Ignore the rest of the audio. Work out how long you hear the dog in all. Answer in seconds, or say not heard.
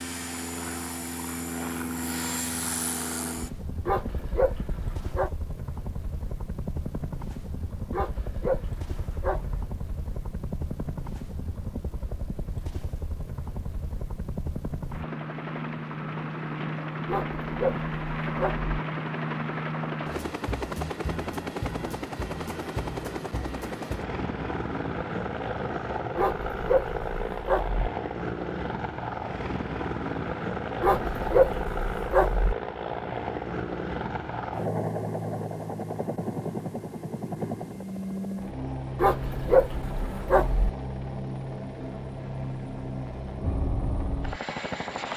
10 s.